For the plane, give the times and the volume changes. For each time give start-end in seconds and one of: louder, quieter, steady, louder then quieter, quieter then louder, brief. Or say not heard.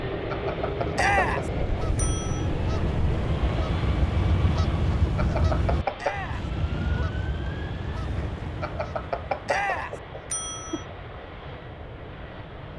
0.0-12.7 quieter.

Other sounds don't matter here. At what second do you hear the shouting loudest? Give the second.
1 s.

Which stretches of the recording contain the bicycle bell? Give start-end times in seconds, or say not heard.
0.3-2.5, 5.2-6.3, 8.6-10.8.